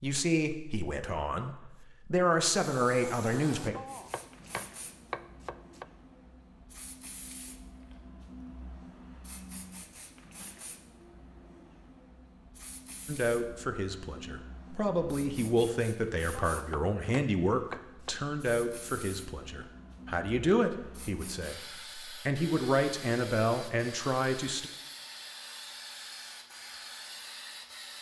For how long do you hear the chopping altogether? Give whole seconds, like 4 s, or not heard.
4 s.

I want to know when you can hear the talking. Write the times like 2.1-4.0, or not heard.
0.0-3.8, 13.1-24.7.